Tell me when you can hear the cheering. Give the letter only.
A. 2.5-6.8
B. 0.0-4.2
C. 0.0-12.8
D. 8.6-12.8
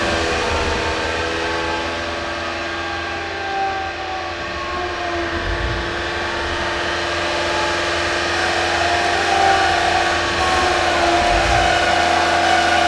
D.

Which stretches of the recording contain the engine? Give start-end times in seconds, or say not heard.
0.0-12.8.